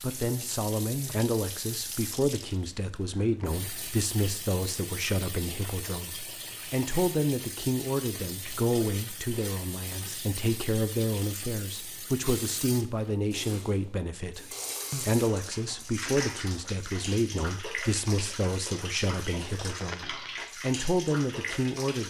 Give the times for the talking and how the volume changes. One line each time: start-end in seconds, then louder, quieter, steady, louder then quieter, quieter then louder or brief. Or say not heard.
0.0-22.0 steady.